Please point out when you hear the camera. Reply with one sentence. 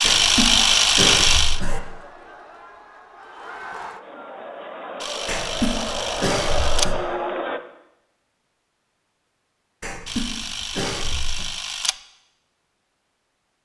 You can hear the camera from 0.0 to 1.6 s, from 5.0 to 6.8 s and from 10.1 to 11.9 s.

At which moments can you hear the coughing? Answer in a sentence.
You can hear the coughing from 0.0 to 1.8 s, from 5.2 to 7.0 s and from 9.8 to 11.5 s.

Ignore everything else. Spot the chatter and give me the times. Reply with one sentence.
You can hear the chatter from 0.0 to 7.6 s.